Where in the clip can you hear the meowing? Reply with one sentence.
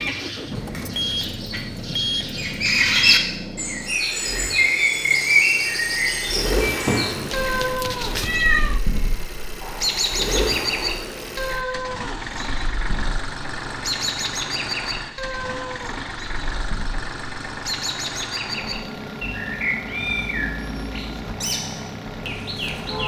You can hear the meowing from 6.8 to 8.8 s.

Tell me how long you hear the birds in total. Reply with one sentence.
You can hear the birds for 23 seconds altogether.